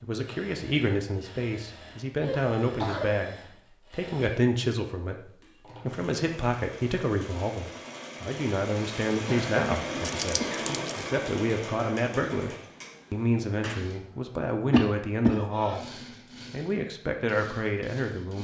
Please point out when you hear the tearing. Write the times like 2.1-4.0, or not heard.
10.0-11.1.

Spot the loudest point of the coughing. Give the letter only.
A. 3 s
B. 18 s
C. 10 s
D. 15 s
D.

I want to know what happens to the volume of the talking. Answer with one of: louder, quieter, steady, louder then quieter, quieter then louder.
steady.